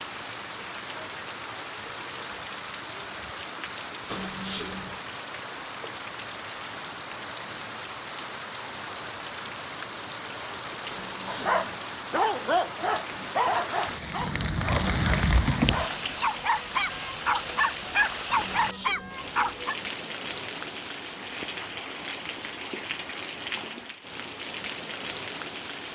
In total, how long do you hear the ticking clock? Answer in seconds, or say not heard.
not heard.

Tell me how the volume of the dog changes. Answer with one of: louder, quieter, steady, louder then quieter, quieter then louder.
quieter then louder.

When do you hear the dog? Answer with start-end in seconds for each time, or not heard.
11.2-19.8.